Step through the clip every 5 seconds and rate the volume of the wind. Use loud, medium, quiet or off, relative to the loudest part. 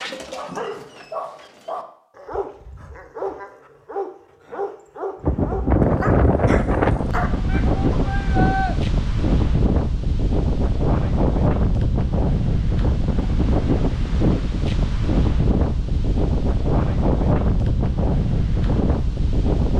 off, loud, loud, loud.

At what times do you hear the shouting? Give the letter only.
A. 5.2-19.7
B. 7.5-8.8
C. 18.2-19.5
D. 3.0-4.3
B.